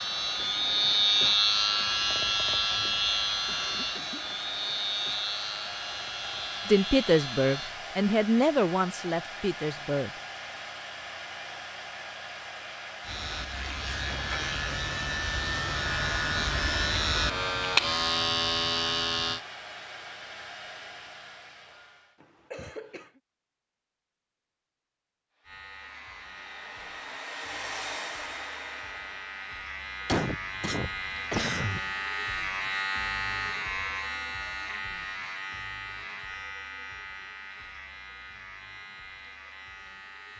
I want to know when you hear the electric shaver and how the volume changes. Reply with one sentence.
The electric shaver can be heard from 0.0 to 7.8 s, getting quieter; from 13.0 to 19.4 s, getting louder; and from 25.4 to 40.3 s, getting louder then quieter.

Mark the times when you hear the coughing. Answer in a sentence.
The coughing can be heard from 3.5 to 4.3 s, from 22.2 to 23.1 s and from 30.1 to 31.8 s.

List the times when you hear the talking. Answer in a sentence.
You can hear the talking from 6.7 to 10.2 s.